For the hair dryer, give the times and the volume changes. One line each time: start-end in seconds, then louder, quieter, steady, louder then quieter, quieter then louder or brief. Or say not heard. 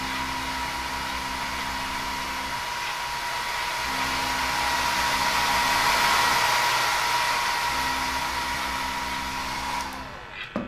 0.0-10.6 louder then quieter.